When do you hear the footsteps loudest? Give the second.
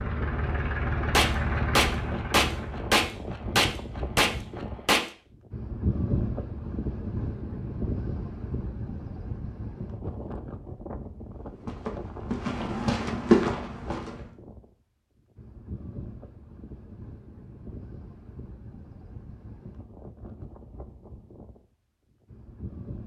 13 s.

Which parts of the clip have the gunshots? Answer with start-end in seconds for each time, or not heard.
1.1-5.1.